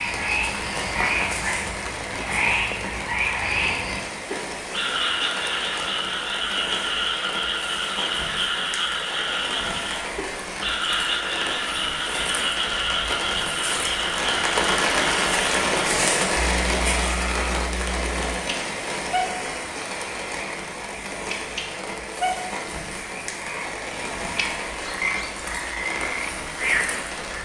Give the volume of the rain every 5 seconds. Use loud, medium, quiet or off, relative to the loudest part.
medium, medium, loud, loud, medium, medium.